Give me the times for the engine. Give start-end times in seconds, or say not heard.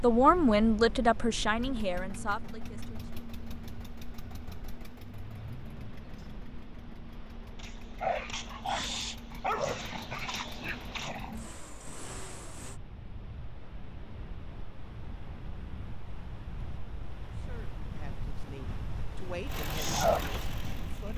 1.6-12.8, 19.4-21.1.